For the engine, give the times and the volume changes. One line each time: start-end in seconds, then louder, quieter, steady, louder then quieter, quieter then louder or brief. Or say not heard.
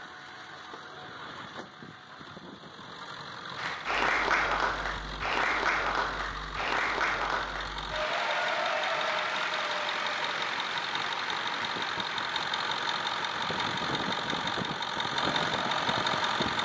0.0-16.6 louder.